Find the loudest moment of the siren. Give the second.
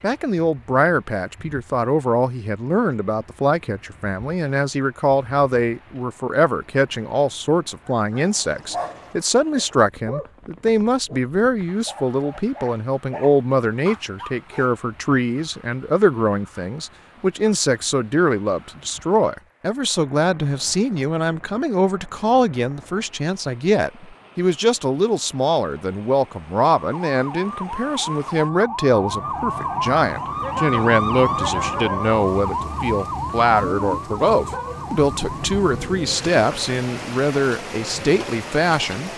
31 s.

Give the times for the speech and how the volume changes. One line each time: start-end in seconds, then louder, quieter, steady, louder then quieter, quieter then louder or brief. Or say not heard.
0.0-39.1 steady.